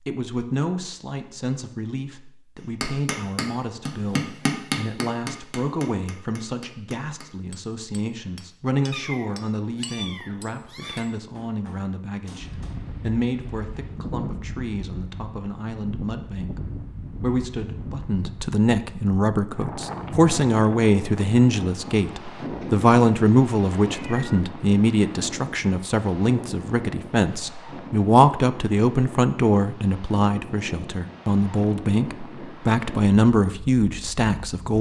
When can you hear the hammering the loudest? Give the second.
5 s.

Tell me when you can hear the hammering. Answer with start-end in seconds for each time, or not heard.
2.8-12.8.